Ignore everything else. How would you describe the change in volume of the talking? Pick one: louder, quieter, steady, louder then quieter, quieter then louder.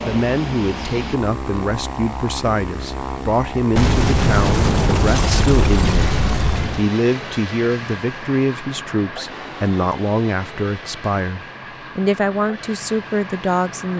steady.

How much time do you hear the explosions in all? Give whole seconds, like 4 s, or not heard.
3 s.